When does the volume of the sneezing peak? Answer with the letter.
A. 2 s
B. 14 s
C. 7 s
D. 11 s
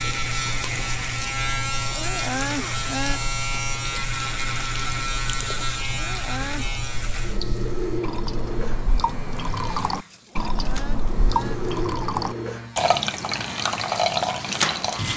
A.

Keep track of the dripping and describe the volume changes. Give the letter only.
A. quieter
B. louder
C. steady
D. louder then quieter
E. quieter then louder
B.